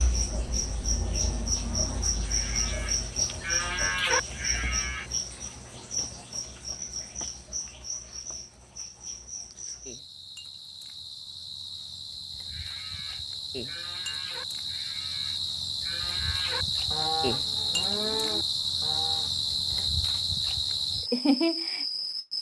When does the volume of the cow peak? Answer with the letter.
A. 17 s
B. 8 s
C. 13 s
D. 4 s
D.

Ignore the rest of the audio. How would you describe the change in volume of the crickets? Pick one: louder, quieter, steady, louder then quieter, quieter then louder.
quieter then louder.